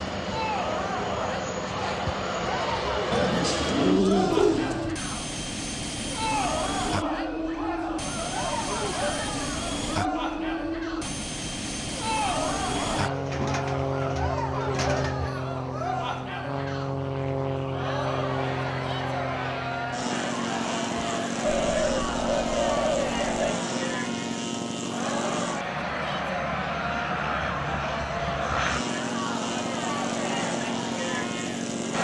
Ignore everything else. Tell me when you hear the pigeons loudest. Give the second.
4 s.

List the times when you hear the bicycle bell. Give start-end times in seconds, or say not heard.
not heard.